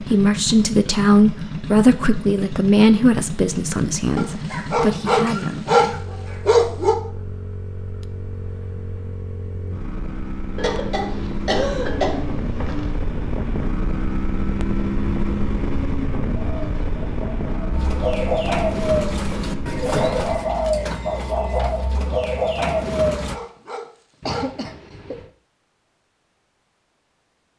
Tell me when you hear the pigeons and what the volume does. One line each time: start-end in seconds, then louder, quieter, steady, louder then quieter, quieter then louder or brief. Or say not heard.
16.4-23.4 louder.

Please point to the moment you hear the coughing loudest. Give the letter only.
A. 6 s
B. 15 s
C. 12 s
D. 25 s
C.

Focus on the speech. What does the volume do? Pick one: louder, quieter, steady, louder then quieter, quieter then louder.
quieter.